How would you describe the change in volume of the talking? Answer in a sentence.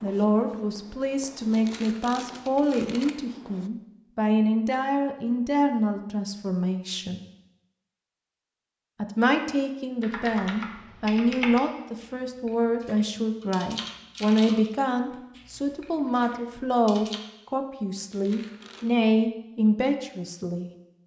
The volume of the talking stays about the same.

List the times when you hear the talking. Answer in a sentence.
The talking can be heard from 0.0 to 7.2 s and from 9.0 to 20.7 s.